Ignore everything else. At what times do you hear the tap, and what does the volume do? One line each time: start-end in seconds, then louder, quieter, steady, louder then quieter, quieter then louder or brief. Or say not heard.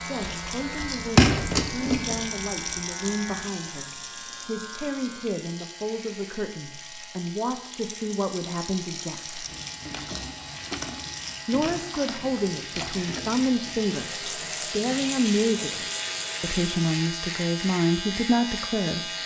0.0-16.9 quieter then louder.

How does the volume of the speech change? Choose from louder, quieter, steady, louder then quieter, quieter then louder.
louder.